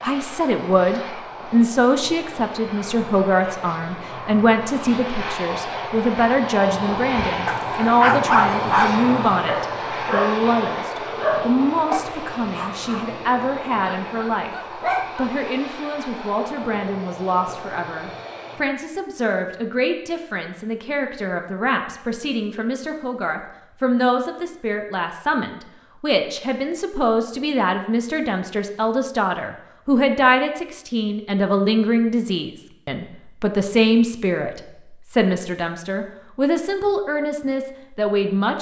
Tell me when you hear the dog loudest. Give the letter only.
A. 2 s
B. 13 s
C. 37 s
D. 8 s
D.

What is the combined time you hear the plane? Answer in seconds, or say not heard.
19 s.